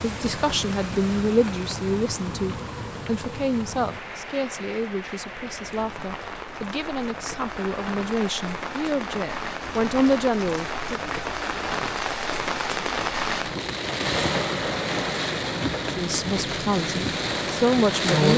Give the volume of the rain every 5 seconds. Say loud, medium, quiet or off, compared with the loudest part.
medium, medium, loud, loud.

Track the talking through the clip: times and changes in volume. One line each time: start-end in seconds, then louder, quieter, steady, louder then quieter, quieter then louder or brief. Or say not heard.
0.0-11.1 quieter then louder
15.9-18.3 brief.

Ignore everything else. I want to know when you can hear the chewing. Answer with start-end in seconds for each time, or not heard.
not heard.